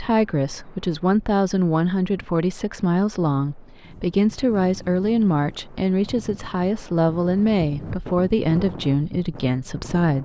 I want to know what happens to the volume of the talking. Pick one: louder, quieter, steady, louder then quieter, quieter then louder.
steady.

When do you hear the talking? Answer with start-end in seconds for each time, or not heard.
0.0-10.2.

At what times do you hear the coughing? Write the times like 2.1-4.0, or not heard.
not heard.